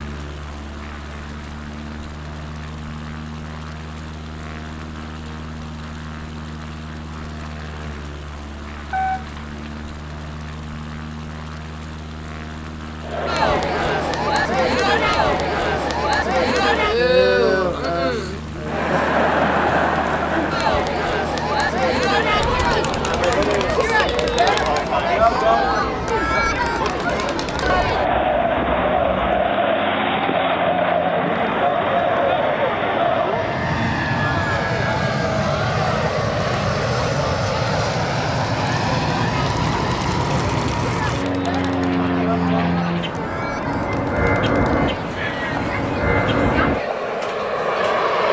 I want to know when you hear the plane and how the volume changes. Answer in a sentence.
You can hear the plane from 0.0 to 48.2 s, getting louder.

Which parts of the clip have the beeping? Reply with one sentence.
The beeping can be heard from 8.9 to 9.6 s.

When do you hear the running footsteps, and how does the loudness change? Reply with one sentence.
The running footsteps can't be heard in this clip.